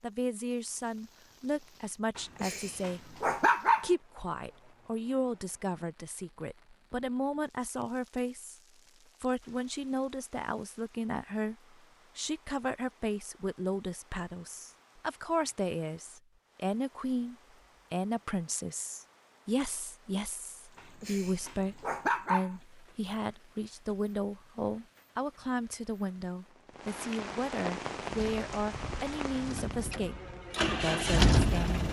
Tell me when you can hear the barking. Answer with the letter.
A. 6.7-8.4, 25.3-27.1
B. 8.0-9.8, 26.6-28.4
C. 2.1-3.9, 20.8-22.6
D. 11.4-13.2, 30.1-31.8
C.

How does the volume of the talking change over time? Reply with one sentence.
The loudness of the talking stays about the same.